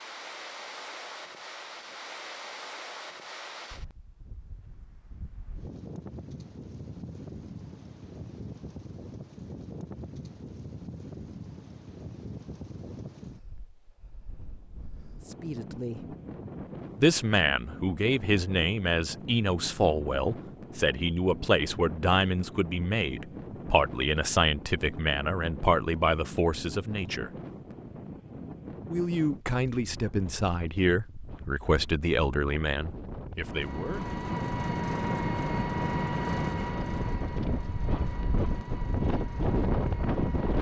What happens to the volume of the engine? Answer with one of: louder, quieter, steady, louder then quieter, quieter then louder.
quieter.